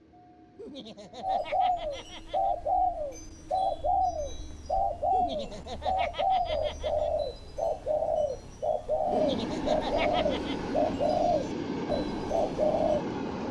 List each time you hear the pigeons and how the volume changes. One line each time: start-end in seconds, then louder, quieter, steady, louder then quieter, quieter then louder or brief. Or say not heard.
1.2-13.1 steady.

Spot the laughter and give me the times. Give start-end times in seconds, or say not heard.
0.6-2.5, 5.1-7.1, 9.1-10.6.